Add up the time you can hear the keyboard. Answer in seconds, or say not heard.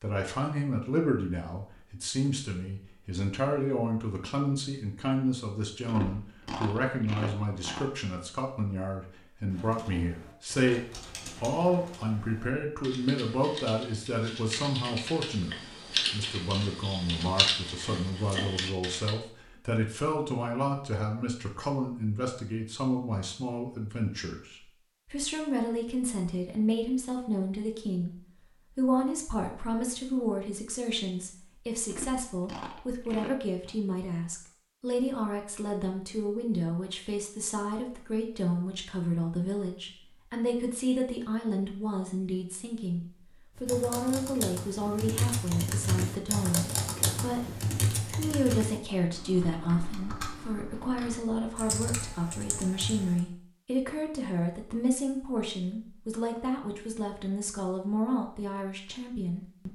19 s.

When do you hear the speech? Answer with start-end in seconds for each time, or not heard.
0.0-59.7.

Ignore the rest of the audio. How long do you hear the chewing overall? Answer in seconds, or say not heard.
4 s.